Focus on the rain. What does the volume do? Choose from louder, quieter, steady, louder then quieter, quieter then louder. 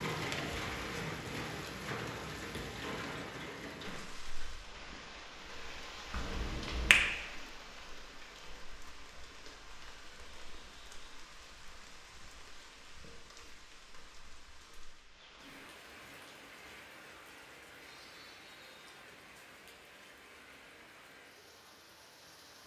quieter.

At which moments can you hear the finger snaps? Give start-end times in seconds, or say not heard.
6.1-7.1.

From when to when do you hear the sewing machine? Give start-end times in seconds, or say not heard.
not heard.